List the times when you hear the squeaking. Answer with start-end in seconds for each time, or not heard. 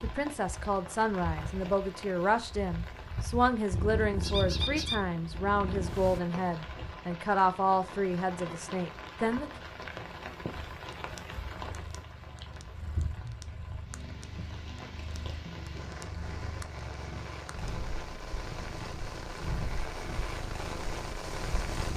4.2-5.0.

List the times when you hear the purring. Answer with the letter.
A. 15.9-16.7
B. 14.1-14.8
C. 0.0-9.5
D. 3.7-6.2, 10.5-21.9
D.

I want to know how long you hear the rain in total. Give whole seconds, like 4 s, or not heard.
22 s.